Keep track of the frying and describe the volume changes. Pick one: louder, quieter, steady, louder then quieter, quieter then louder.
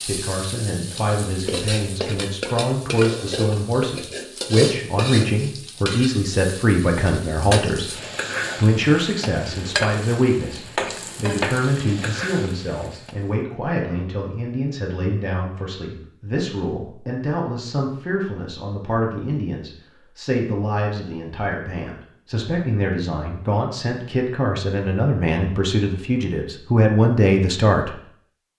steady.